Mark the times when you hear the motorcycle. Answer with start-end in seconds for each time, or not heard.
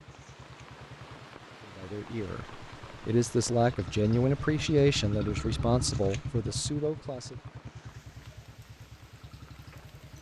0.0-10.1.